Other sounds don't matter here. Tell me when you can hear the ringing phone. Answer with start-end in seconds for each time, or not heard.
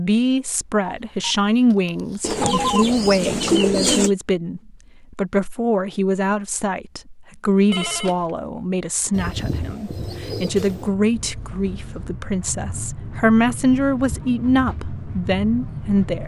0.8-2.9, 7.7-8.3, 11.2-12.2.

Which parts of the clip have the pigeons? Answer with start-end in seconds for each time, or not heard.
2.2-4.1, 9.1-10.9.